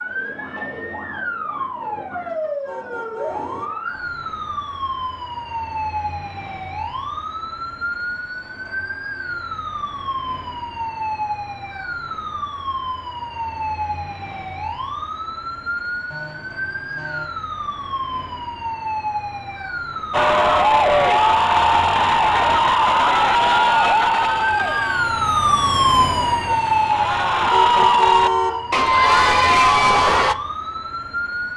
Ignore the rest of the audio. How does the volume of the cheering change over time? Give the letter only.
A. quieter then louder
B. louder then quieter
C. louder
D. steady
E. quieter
A.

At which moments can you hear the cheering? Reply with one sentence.
You can hear the cheering from 20.1 to 30.4 s.